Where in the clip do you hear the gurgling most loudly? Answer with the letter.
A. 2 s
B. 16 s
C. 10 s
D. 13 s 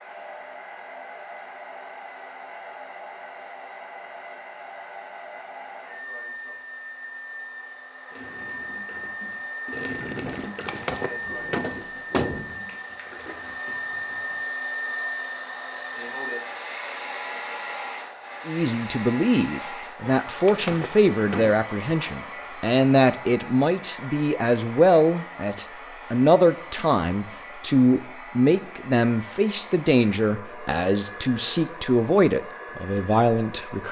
C.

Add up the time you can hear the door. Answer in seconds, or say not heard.
4 s.